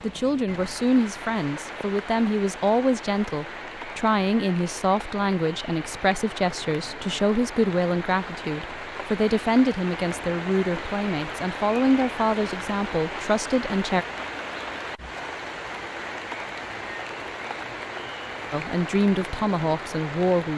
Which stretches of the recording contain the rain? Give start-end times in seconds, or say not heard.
0.0-20.5.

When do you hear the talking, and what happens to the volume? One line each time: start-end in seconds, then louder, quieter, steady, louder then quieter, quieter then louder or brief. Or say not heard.
0.0-14.1 steady
18.5-20.5 brief.